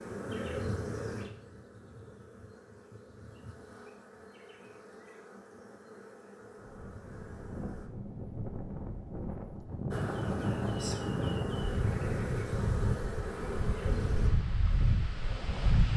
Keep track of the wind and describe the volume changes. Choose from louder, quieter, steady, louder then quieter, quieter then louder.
louder.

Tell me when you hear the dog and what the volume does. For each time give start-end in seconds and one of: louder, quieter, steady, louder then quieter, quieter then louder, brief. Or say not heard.
not heard.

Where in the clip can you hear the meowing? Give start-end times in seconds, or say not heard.
not heard.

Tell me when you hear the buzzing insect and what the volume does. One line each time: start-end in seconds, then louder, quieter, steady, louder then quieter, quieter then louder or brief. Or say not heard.
0.0-7.9 quieter
9.9-14.3 steady.